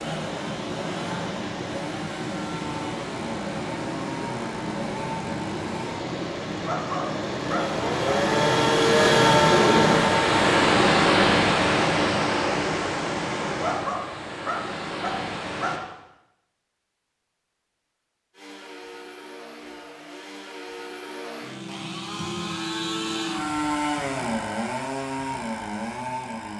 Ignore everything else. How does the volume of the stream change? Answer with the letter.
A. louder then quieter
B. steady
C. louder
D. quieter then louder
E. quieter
A.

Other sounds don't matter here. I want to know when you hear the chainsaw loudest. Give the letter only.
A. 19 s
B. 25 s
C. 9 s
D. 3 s
C.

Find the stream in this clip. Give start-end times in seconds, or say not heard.
0.0-15.8.